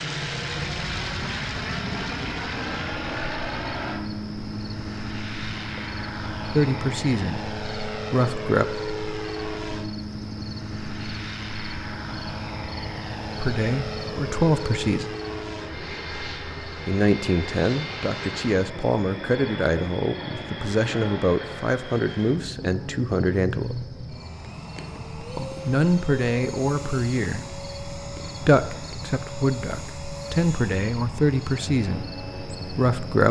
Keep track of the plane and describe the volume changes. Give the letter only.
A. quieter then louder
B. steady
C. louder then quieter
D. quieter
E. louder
D.